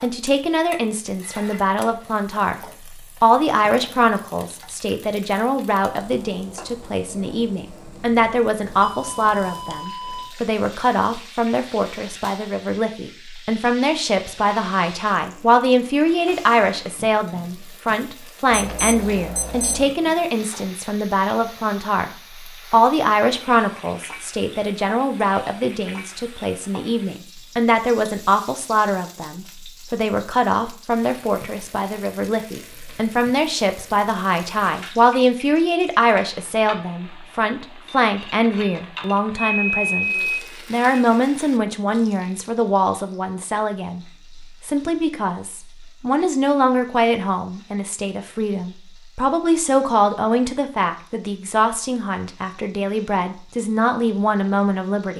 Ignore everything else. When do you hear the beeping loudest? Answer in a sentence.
The loudest moment of the beeping is at 40 seconds.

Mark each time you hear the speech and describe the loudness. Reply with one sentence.
The speech can be heard briefly from 0.0 to 2.6 s; from 3.2 to 22.1 s, at a steady volume; and from 22.7 to 55.1 s, at a steady volume.